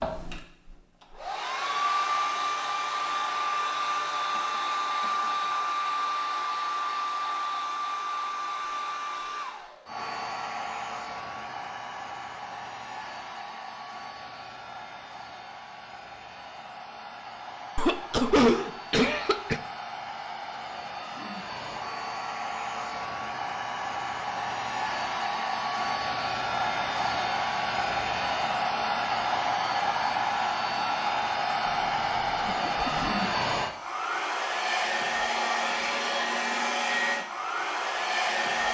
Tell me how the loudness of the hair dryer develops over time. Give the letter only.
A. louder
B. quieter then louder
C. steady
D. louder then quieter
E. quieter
B.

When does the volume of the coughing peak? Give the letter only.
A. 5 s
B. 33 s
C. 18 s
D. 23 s
C.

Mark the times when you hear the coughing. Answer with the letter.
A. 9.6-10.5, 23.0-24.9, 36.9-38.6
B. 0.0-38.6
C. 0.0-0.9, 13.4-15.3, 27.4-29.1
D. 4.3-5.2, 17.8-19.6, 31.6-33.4
D.